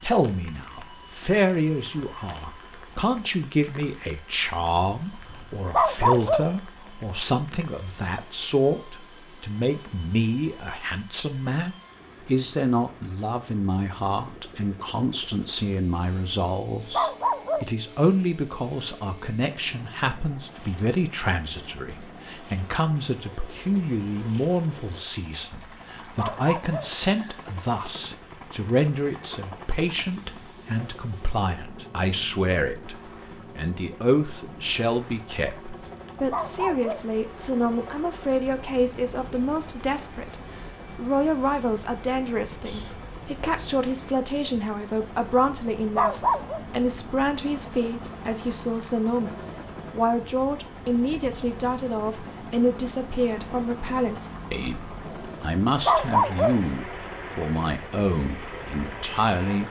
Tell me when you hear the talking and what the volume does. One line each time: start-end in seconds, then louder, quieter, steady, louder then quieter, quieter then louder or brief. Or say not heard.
0.0-59.6 steady.